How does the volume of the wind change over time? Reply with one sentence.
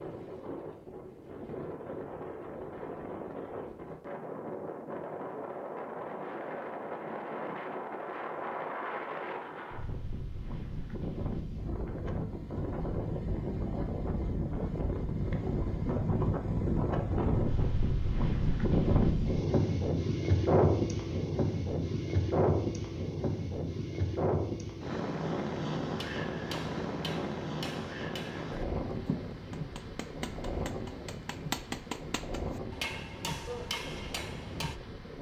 The volume of the wind goes up, then down.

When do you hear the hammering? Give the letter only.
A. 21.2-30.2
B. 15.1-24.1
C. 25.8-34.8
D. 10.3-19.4
C.